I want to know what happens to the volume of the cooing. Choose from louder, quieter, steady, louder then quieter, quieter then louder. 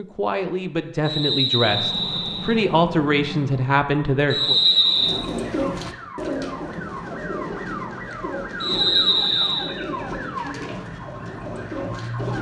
quieter.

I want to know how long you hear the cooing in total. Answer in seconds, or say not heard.
7 s.